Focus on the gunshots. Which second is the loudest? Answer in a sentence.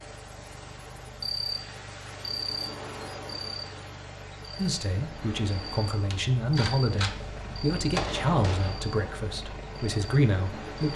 The volume of the gunshots peaks at 8 seconds.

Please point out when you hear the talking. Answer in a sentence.
The talking can be heard from 4.5 to 10.9 s.